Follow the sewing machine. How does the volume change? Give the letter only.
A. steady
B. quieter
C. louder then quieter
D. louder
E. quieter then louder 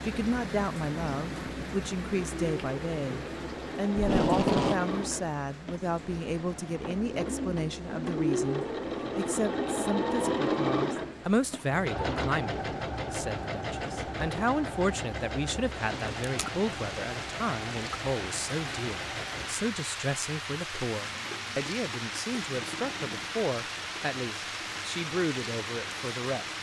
C.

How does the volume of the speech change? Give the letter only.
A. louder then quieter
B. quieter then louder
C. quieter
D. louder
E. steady
E.